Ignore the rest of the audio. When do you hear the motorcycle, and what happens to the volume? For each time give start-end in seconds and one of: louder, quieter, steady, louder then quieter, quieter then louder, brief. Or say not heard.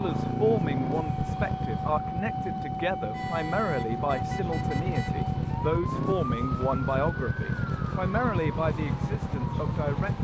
0.0-10.1 quieter then louder.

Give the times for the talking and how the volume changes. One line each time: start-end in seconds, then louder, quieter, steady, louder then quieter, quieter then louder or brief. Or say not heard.
0.0-10.1 steady.